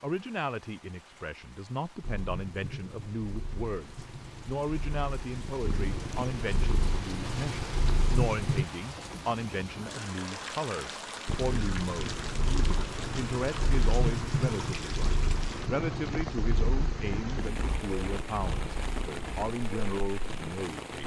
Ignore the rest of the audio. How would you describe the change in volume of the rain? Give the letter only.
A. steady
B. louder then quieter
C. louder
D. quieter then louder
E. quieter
C.